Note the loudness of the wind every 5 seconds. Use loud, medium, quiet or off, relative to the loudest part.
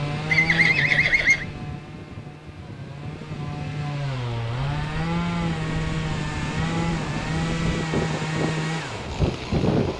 medium, loud.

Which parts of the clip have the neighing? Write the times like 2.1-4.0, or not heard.
0.2-1.4.